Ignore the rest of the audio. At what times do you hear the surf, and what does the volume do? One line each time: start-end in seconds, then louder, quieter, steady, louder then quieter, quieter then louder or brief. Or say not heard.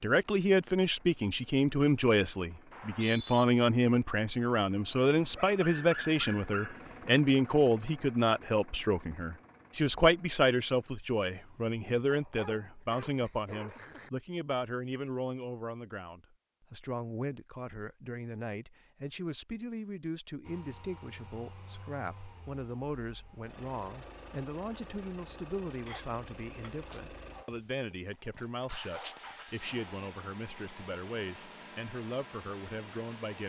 not heard.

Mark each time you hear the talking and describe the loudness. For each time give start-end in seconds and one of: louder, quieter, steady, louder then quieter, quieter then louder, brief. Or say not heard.
0.0-33.4 quieter.